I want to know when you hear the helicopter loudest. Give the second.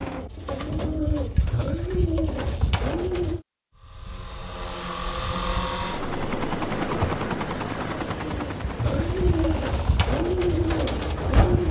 7 s.